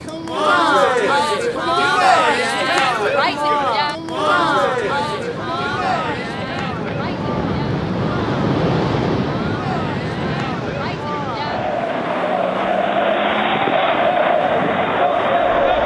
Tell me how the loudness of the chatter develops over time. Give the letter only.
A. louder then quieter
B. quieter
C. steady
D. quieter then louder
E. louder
D.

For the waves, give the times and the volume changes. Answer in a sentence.
The waves can be heard from 0.0 to 15.8 s, getting louder then quieter.